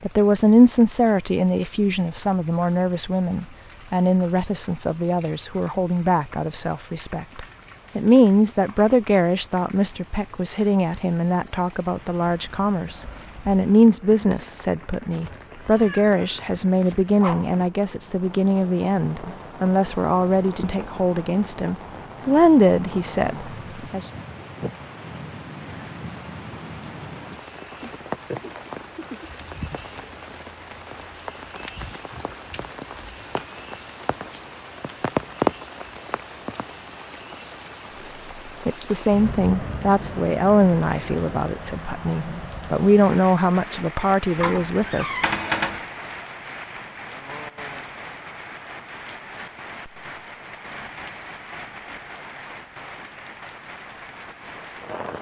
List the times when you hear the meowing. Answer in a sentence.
The meowing can be heard from 15.1 to 17.1 s and from 44.4 to 45.8 s.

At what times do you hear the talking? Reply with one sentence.
The talking can be heard from 0.0 to 24.1 s and from 38.6 to 45.2 s.